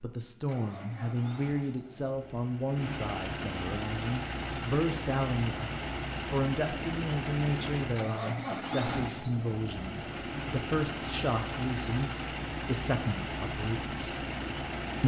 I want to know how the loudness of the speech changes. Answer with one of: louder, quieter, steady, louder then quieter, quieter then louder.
steady.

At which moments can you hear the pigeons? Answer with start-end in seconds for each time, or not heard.
not heard.